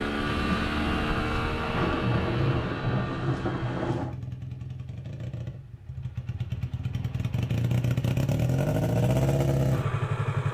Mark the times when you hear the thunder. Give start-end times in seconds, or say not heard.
0.2-4.2.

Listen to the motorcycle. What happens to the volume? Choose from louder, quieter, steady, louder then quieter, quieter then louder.
quieter then louder.